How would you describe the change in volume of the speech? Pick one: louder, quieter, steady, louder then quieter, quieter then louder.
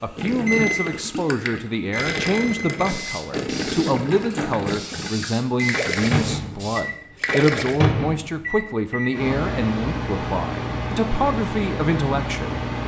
steady.